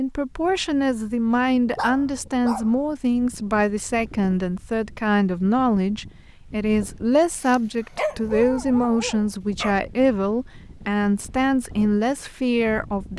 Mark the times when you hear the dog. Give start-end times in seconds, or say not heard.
1.8-2.8, 7.3-9.8.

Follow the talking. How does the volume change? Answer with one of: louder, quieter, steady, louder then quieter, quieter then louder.
steady.